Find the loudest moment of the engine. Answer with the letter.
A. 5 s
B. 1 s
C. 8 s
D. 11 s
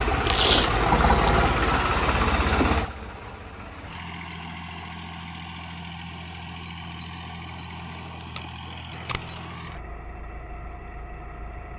B.